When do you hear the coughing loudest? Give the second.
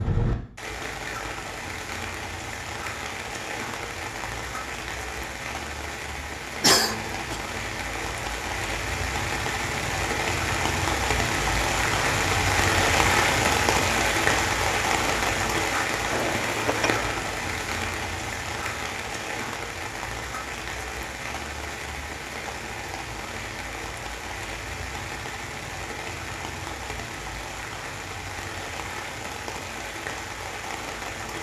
7 s.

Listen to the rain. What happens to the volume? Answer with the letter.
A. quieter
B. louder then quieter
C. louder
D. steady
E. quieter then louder
B.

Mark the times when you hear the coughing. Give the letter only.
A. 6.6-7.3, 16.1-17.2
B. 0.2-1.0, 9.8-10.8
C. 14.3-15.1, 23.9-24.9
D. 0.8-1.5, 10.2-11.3
A.